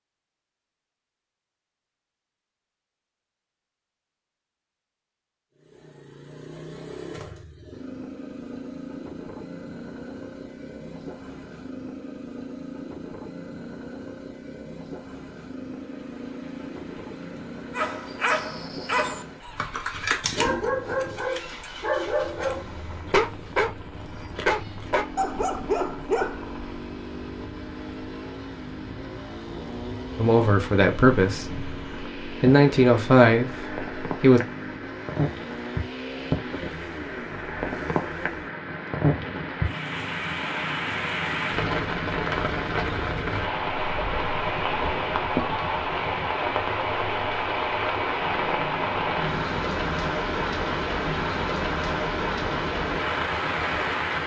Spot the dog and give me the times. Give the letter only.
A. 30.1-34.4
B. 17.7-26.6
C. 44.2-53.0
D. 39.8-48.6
B.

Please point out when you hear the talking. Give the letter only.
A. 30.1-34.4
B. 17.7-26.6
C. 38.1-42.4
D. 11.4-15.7
A.